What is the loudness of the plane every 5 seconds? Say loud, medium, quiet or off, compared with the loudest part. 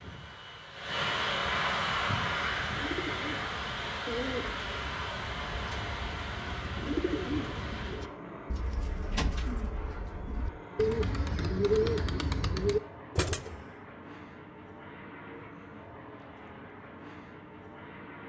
loud, medium, quiet, quiet.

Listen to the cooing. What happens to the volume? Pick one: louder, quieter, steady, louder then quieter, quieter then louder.
louder.